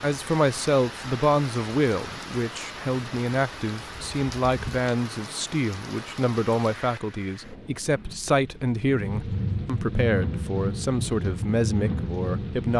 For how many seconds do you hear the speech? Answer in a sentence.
The speech can be heard for 13 seconds in total.